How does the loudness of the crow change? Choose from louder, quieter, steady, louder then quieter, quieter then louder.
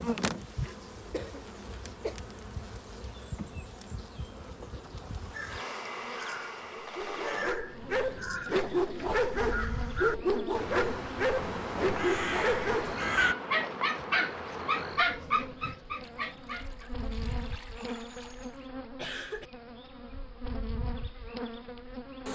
louder.